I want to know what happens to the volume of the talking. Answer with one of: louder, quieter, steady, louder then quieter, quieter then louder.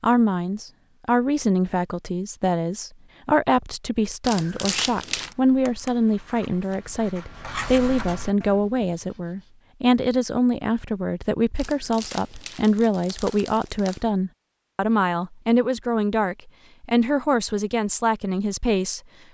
steady.